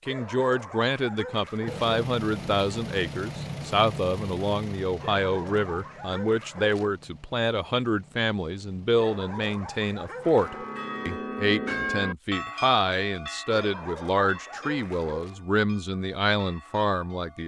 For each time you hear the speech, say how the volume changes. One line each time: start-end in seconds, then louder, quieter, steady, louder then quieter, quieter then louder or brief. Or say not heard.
0.1-17.4 steady.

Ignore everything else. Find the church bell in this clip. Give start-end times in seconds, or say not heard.
10.2-17.4.